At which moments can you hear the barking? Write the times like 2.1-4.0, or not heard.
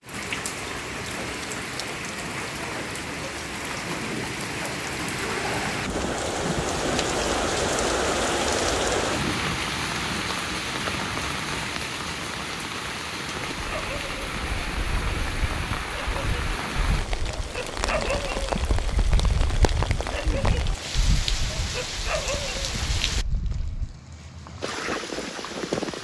13.6-24.0.